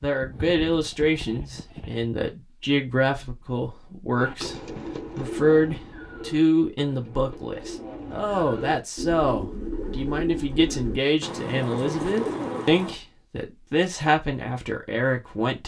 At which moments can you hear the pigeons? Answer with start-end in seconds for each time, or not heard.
4.2-13.0.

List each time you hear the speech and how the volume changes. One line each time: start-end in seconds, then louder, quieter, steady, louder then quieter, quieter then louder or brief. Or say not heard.
0.0-15.6 steady.